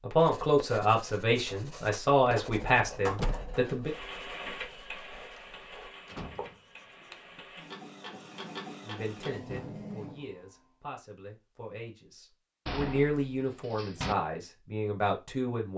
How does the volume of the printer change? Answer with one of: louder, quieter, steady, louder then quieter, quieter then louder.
quieter then louder.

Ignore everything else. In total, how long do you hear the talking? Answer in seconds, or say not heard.
11 s.